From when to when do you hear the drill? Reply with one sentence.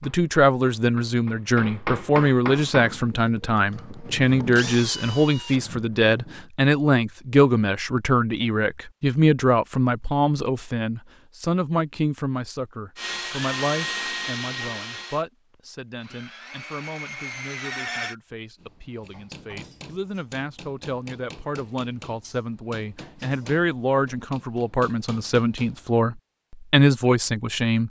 You can hear the drill from 2.5 to 6.5 s and from 12.9 to 18.1 s.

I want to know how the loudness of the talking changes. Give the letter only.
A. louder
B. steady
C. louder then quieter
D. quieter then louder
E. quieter
D.